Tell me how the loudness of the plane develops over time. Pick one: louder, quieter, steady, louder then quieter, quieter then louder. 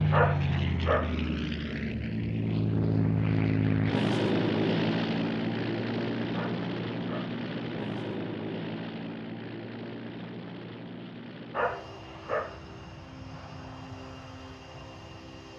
quieter.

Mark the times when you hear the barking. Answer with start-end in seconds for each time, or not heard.
0.1-1.4, 6.3-7.3, 11.5-12.8.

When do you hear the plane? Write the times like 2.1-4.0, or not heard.
0.0-15.5.